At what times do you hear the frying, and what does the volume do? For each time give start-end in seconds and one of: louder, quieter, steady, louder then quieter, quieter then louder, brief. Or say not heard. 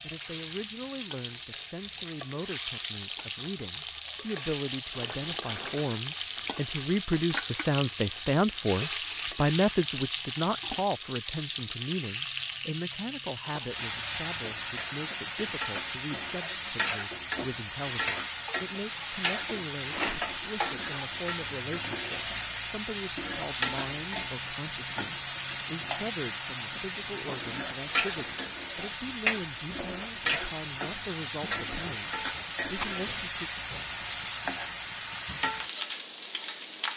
0.0-36.9 steady.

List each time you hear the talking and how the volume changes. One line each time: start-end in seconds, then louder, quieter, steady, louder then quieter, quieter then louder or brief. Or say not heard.
0.0-33.5 louder then quieter.